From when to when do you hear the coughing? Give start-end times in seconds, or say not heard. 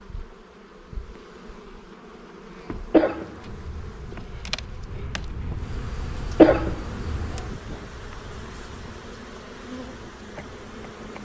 2.9-3.9, 6.4-7.3.